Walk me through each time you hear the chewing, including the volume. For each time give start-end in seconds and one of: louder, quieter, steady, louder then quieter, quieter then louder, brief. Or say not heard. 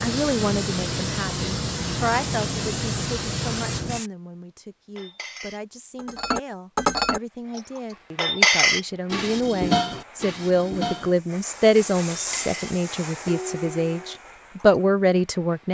not heard.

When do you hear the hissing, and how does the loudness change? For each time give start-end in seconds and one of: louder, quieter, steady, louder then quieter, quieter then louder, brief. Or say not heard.
0.0-4.1 steady
7.2-15.6 louder then quieter.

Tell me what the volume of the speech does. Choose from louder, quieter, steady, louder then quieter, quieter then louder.
quieter then louder.